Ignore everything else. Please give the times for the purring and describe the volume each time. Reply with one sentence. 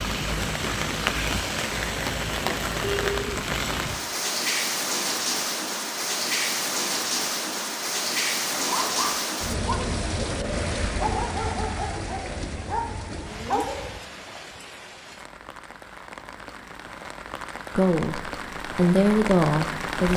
You can't hear the purring here.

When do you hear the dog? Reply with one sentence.
The dog can be heard from 8.5 to 14.0 s.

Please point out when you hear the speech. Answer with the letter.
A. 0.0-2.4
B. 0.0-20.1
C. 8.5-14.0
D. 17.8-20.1
D.